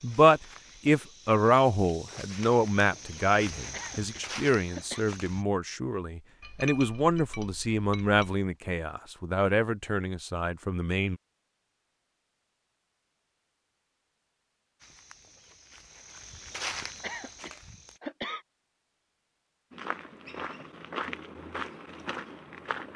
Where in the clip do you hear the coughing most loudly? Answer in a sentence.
The loudest moment of the coughing is at 18 seconds.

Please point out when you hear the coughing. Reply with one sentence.
The coughing can be heard from 3.7 to 5.0 s and from 17.0 to 18.4 s.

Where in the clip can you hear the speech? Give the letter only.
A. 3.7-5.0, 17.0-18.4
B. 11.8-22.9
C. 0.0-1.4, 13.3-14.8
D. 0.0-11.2
D.